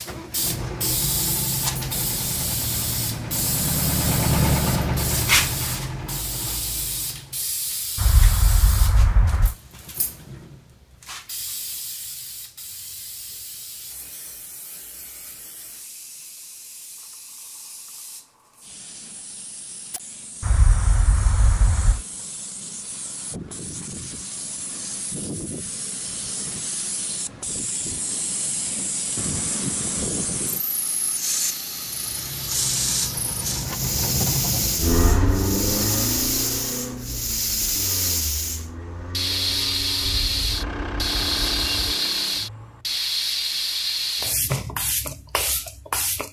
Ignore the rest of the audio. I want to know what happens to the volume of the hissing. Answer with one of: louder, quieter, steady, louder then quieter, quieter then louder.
quieter then louder.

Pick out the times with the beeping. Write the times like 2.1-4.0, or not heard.
8.0-9.6, 20.4-22.0, 40.0-42.0.